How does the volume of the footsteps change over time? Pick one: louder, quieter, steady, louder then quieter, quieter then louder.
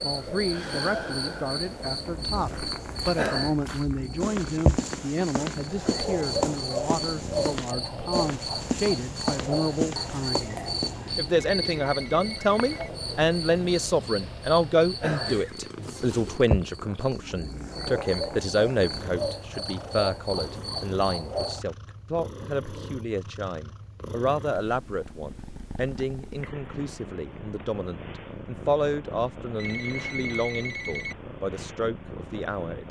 louder.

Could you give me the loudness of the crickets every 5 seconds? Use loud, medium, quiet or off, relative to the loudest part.
loud, loud, loud, loud, loud, off, off.